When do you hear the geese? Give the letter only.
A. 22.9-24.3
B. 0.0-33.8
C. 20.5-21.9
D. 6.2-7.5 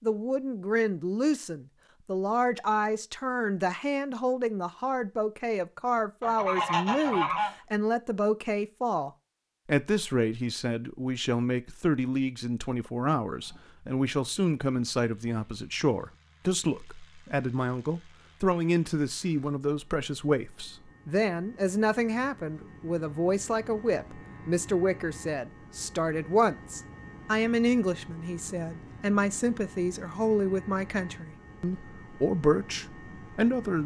D.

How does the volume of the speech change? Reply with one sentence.
The loudness of the speech stays about the same.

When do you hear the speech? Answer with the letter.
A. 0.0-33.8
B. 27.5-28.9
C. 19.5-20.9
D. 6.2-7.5
A.